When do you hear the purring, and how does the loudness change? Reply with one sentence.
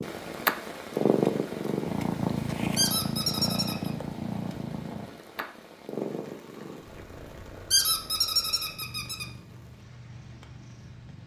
You can hear the purring from 0.0 to 11.2 s, getting quieter.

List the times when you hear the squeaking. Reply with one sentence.
You can hear the squeaking from 2.8 to 3.9 s and from 7.7 to 9.2 s.